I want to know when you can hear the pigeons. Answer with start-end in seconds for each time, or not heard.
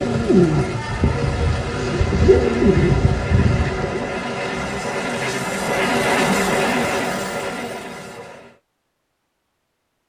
0.0-4.2.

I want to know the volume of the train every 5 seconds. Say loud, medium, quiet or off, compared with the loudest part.
medium, loud.